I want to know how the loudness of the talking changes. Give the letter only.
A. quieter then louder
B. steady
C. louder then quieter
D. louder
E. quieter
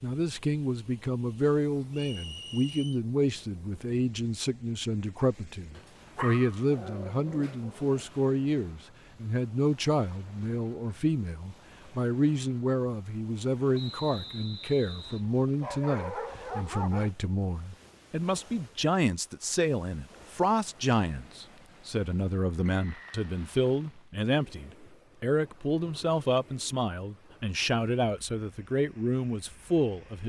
B.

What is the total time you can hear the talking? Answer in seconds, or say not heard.
30 s.